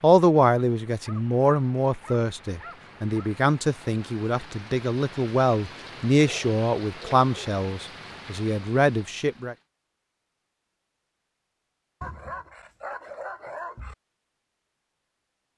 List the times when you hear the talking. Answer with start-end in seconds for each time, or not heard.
0.0-9.6.